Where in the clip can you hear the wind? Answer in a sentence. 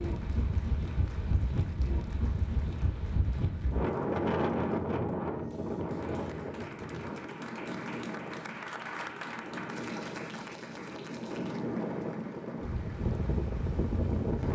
You can hear the wind from 0.0 to 14.5 s.